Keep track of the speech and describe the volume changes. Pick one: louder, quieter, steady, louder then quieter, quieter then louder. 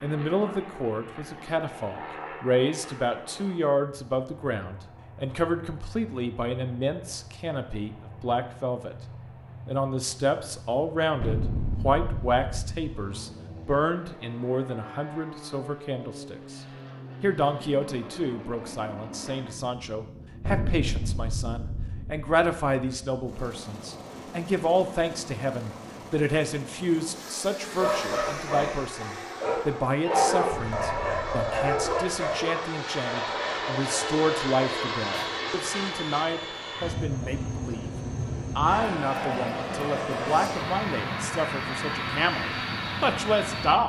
steady.